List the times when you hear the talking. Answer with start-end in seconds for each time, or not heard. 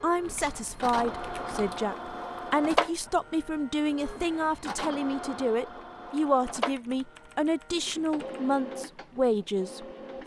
0.0-10.2.